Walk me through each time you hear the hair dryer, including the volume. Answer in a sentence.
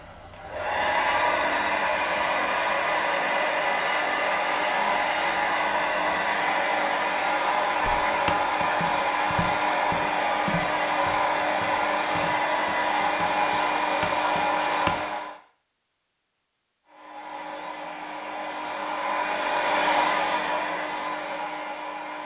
The hair dryer can be heard from 0.0 to 15.3 s, at a steady volume; and from 16.9 to 22.2 s, getting louder then quieter.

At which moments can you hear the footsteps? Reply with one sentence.
The footsteps can be heard from 7.8 to 14.9 s.